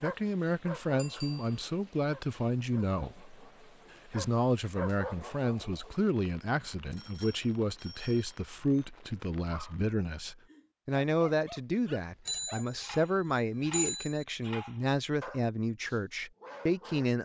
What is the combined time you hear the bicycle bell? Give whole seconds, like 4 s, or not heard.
4 s.